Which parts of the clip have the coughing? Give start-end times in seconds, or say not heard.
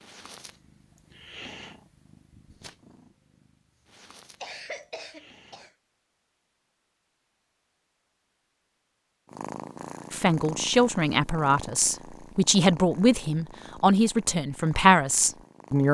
4.4-5.7.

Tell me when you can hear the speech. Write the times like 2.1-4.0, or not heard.
10.1-15.8.